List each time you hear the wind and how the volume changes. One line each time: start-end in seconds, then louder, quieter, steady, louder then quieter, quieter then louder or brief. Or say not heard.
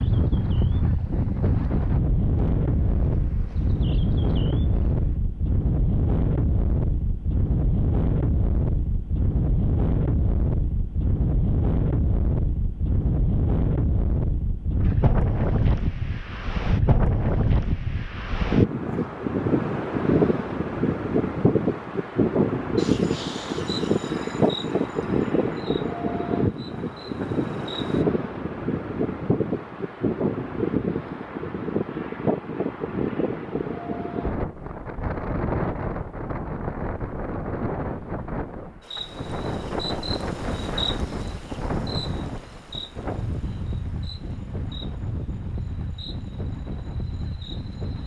0.0-48.0 quieter.